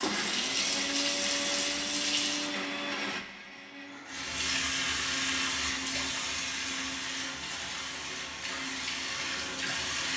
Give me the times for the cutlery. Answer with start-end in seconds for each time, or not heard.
not heard.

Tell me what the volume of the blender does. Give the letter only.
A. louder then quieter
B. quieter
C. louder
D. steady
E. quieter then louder
B.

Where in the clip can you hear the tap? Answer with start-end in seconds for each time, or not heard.
0.0-2.5, 4.0-10.1.